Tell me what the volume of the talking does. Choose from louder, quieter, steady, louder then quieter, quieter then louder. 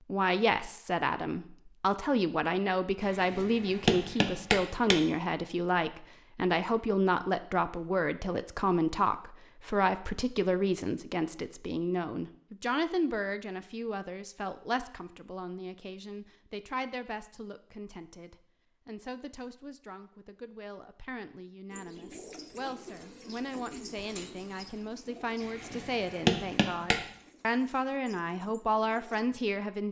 quieter then louder.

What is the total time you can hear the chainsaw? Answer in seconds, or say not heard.
not heard.